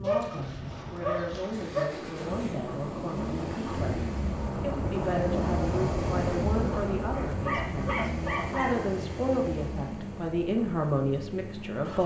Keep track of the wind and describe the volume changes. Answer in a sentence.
The loudness of the wind goes up, then down.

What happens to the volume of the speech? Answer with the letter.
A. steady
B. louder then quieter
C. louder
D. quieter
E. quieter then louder
C.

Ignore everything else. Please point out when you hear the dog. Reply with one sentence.
The dog can be heard from 0.0 to 1.9 s and from 7.1 to 8.8 s.